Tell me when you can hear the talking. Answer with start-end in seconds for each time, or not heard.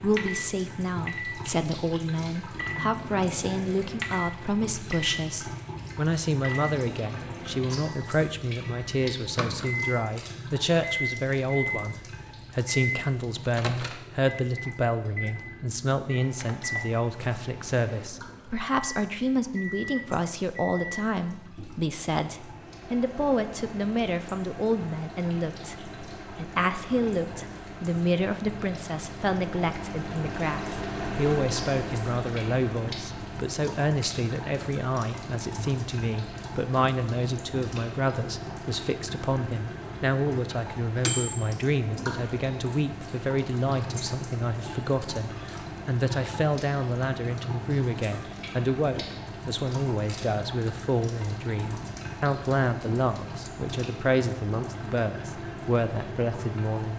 0.0-56.9.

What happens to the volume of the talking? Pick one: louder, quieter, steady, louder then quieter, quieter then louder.
steady.